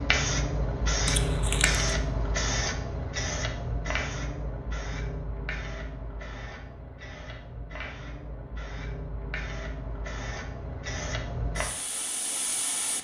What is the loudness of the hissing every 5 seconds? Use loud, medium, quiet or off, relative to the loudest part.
loud, medium, medium.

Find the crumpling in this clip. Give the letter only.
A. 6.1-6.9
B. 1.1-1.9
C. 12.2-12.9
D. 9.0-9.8
B.